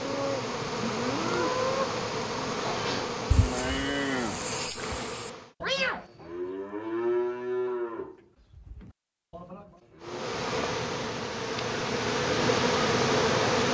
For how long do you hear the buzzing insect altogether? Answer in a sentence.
The buzzing insect can be heard for 9 seconds in total.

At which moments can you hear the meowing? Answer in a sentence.
The meowing can be heard from 5.6 to 6.3 s.